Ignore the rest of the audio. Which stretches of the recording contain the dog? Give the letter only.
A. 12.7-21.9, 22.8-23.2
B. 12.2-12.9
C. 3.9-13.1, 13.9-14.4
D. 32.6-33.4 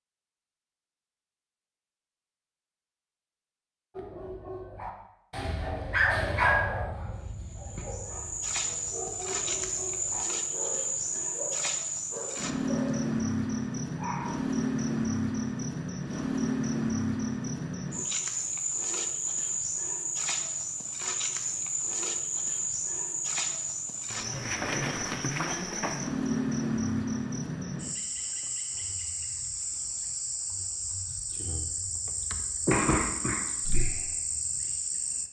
C.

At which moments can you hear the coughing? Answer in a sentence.
The coughing can be heard from 32.6 to 33.4 s.